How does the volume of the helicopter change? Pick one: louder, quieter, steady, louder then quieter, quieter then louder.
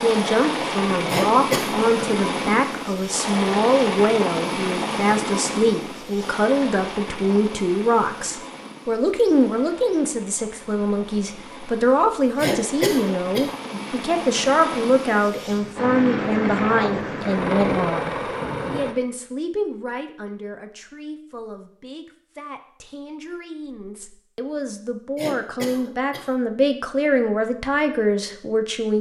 quieter then louder.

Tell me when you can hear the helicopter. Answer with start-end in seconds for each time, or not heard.
0.0-18.9.